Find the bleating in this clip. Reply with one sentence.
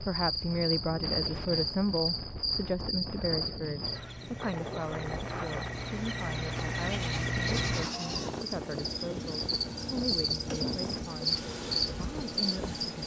You can hear the bleating from 6.7 to 8.4 s.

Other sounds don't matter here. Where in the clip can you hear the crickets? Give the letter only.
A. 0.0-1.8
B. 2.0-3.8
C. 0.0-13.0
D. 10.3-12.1
C.